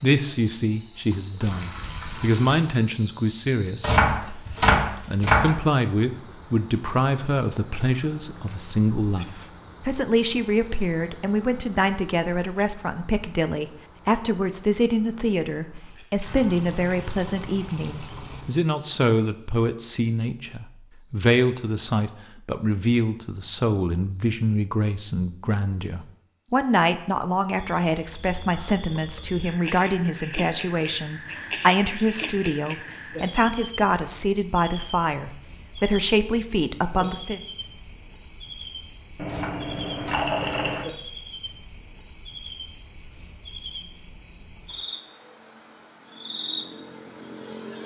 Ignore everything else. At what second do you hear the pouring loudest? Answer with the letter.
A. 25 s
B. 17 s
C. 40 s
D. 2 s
C.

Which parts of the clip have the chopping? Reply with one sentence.
You can hear the chopping from 3.8 to 5.6 s and from 39.2 to 40.9 s.